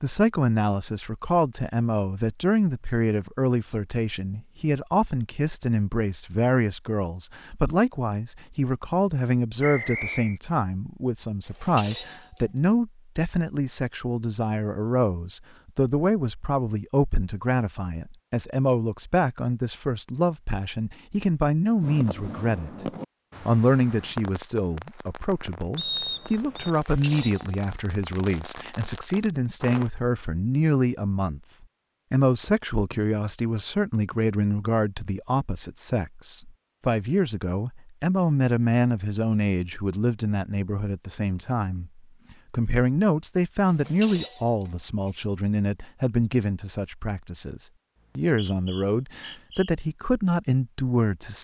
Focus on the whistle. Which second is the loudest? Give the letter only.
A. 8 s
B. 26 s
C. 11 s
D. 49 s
B.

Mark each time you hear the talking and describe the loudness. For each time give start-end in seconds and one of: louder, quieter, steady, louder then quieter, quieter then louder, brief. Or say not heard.
0.0-51.4 steady.